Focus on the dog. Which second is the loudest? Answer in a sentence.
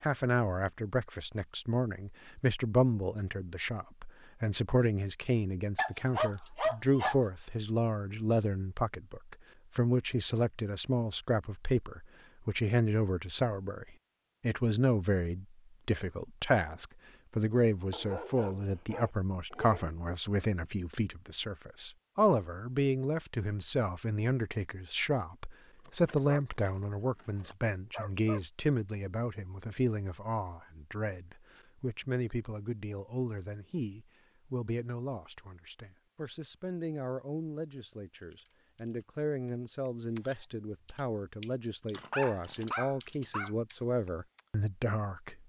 The loudest moment of the dog is at 7 seconds.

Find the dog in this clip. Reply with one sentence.
The dog can be heard from 5.8 to 7.2 s, from 17.9 to 19.9 s, from 25.9 to 28.4 s and from 41.9 to 43.5 s.